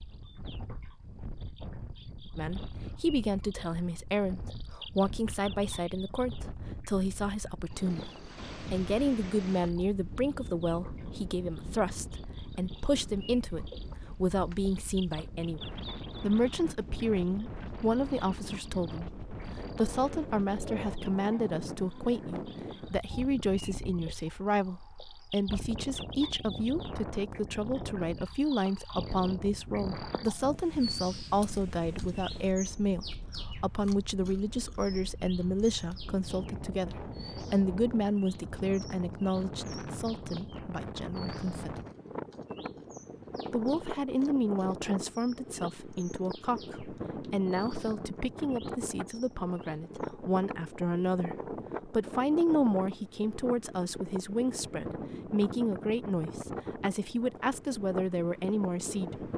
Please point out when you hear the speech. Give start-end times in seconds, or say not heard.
2.4-15.6, 16.2-41.8, 43.5-59.3.